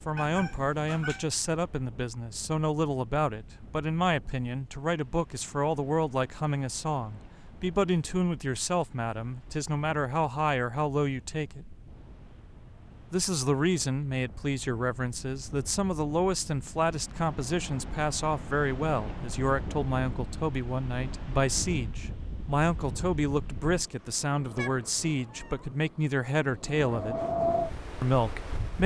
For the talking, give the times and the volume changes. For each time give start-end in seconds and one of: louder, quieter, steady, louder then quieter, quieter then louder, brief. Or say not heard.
0.1-11.8 steady
13.1-27.2 steady
28.0-28.8 brief.